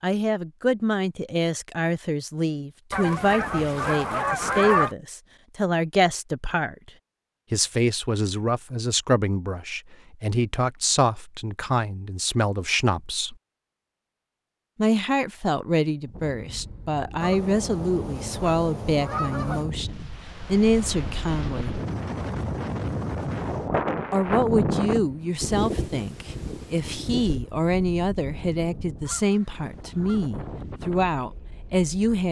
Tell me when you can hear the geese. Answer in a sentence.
You can hear the geese from 2.9 to 4.9 s, from 17.2 to 19.7 s and from 29.0 to 30.3 s.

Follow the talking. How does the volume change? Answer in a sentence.
The volume of the talking stays about the same.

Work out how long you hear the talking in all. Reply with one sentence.
You can hear the talking for 28 seconds altogether.